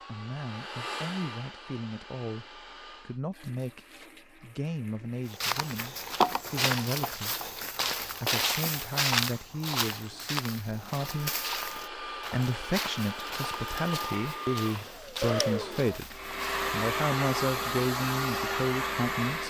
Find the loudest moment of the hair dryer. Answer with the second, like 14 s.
17 s.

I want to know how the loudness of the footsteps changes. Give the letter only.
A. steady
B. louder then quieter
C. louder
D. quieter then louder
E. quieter
E.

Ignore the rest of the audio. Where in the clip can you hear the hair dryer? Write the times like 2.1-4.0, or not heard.
0.0-3.2, 10.9-19.4.